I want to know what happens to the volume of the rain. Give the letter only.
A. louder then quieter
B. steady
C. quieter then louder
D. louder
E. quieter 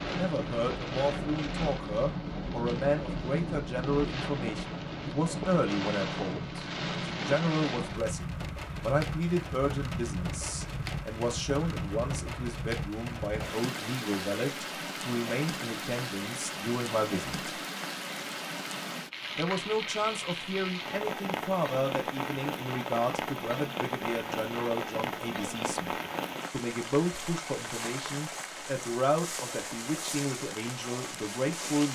B.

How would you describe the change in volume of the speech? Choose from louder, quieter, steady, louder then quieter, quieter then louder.
steady.